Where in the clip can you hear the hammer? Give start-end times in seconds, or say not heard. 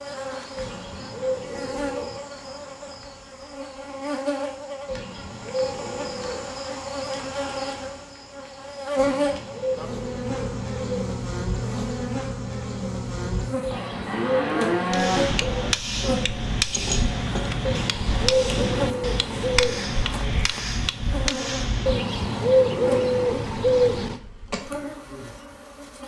14.9-21.9.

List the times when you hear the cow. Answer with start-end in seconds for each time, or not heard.
13.7-15.7.